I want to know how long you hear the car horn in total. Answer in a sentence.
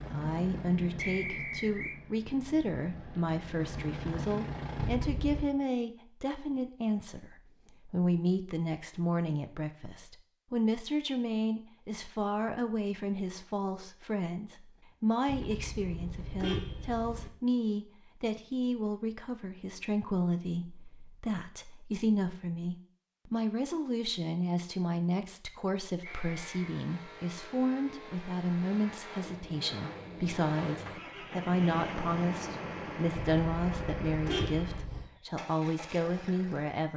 The car horn can be heard for 5 seconds in total.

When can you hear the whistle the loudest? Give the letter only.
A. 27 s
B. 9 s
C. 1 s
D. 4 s
C.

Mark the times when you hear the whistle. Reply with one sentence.
The whistle can be heard from 0.9 to 2.0 s and from 26.0 to 26.7 s.